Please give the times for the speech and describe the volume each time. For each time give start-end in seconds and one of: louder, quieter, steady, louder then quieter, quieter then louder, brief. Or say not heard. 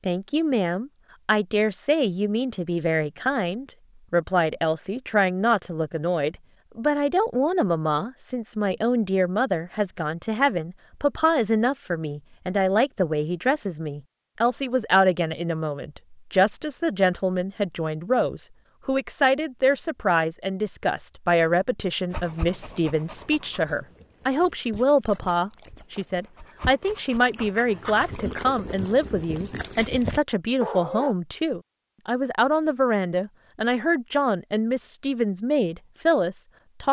0.1-36.8 steady.